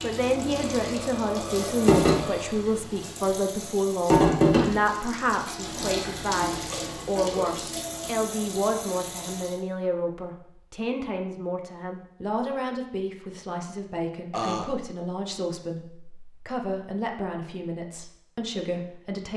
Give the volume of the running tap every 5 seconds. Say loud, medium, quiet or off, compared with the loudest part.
loud, medium, off, off.